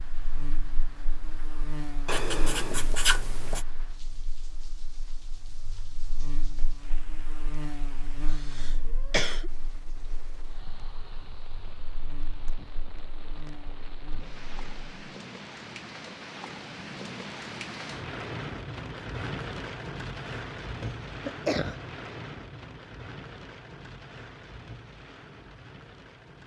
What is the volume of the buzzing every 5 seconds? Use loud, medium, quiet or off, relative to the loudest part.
loud, loud, medium, off, off, off.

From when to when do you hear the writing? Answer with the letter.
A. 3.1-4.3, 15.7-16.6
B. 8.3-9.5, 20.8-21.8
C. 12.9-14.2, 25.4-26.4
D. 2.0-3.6
D.